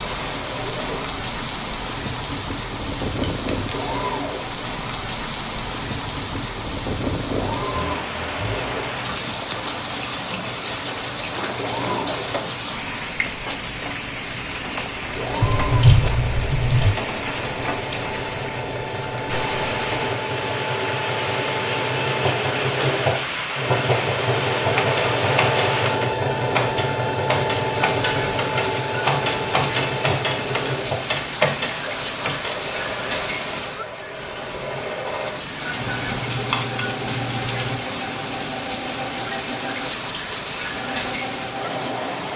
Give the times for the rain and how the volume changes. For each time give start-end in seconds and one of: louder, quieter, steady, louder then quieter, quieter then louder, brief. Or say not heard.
0.0-42.3 steady.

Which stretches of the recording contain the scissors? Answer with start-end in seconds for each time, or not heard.
3.0-3.8, 15.4-16.9, 35.8-37.8.